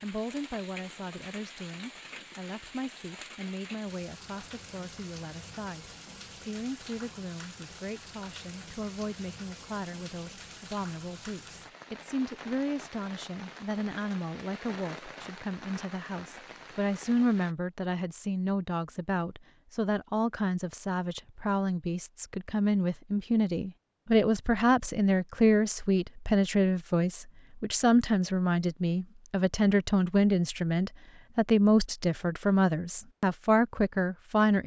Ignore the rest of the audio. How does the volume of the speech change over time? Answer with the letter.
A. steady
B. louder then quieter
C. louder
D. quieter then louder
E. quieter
C.